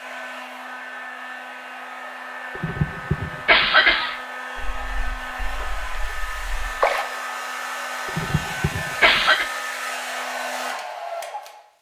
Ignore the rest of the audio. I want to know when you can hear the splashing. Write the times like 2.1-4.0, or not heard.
4.5-7.0.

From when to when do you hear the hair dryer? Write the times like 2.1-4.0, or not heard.
0.0-11.6.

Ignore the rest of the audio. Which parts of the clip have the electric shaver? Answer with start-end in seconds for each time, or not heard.
not heard.